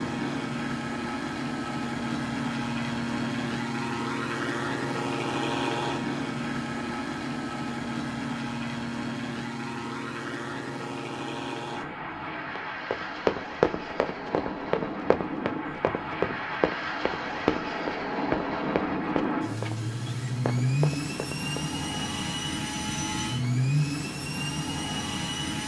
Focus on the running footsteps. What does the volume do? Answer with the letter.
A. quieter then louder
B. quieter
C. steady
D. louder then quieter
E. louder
B.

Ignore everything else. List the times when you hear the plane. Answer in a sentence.
You can hear the plane from 0.0 to 25.6 s.